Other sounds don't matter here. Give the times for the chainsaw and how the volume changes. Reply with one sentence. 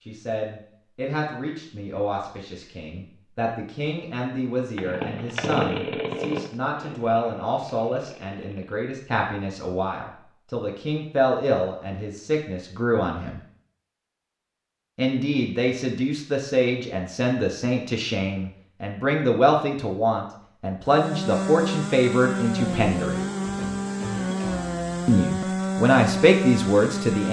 You can hear the chainsaw from 4.8 to 8.9 s, getting quieter; and from 20.9 to 27.2 s, at a steady volume.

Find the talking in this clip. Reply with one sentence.
You can hear the talking from 0.1 to 13.4 s, from 14.9 to 23.2 s and from 25.1 to 27.2 s.